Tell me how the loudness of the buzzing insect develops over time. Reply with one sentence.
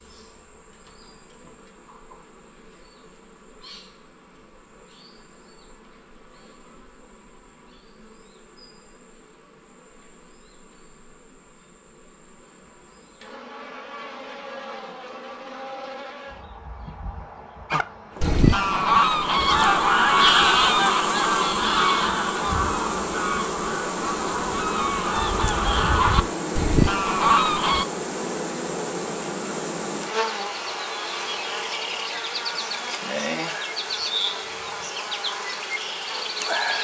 The volume of the buzzing insect goes up.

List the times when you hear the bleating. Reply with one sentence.
The bleating can't be heard in this clip.